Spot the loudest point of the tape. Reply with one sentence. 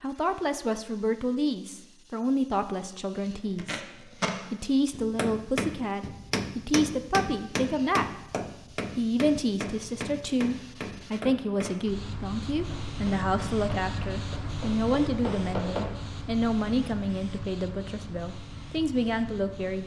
The volume of the tape peaks at 4 seconds.